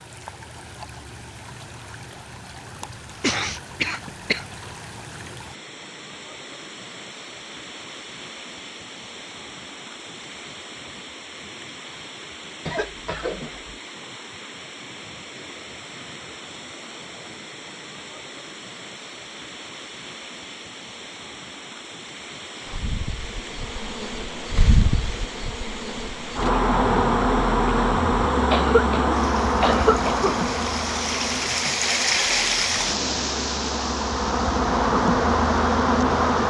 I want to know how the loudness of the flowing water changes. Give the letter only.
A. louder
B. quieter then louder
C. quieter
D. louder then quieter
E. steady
A.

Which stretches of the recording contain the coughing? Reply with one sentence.
The coughing can be heard from 2.8 to 4.5 s, from 12.7 to 13.7 s and from 28.5 to 30.4 s.